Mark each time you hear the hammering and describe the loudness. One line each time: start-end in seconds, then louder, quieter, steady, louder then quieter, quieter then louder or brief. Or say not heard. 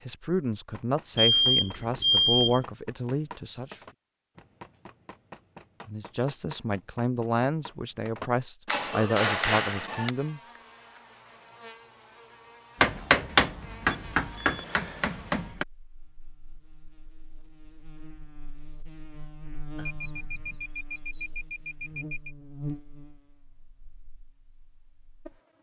0.7-10.1 louder
12.8-15.7 brief.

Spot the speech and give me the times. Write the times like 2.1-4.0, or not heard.
0.1-3.8, 5.8-10.4.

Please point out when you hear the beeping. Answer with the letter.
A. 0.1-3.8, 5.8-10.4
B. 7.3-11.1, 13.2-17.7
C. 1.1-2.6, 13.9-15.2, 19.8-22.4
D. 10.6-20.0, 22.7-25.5
C.